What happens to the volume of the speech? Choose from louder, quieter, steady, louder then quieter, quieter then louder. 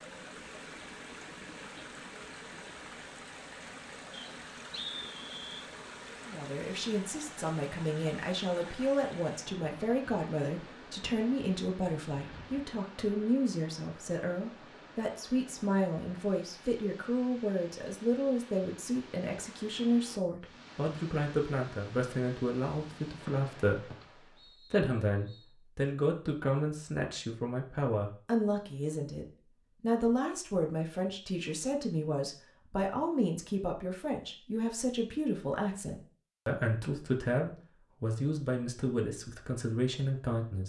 steady.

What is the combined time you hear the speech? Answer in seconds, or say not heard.
34 s.